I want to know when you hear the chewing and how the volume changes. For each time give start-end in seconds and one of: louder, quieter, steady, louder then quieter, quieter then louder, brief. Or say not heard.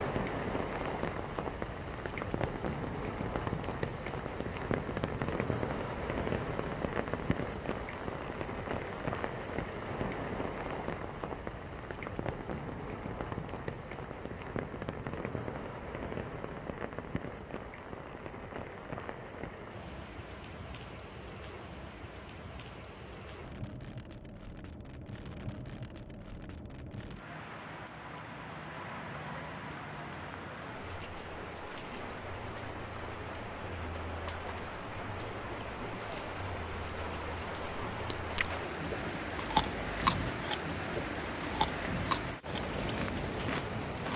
38.1-44.1 quieter.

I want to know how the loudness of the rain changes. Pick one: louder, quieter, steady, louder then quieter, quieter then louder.
quieter then louder.